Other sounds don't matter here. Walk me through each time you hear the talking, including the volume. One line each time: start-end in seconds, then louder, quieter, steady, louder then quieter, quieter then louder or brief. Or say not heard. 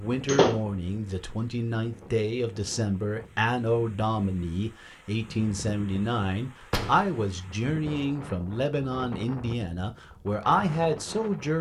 0.0-11.5 steady.